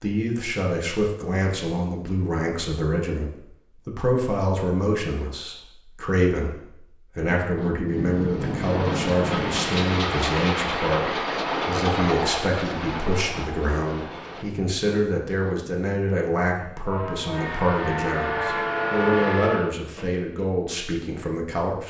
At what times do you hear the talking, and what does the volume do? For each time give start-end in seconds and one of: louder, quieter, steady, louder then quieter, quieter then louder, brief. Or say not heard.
0.0-21.8 steady.